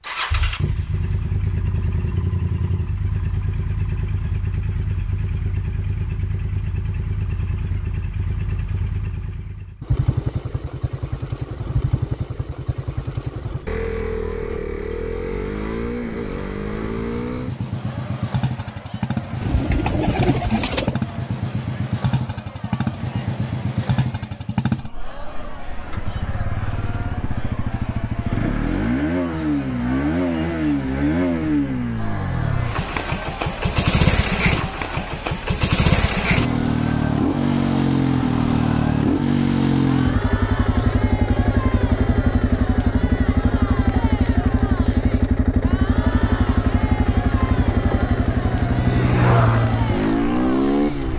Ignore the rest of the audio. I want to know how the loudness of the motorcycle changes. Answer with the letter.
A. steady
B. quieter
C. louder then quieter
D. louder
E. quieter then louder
D.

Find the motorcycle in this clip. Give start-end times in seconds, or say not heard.
0.0-51.1.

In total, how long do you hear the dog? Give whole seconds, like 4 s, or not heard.
not heard.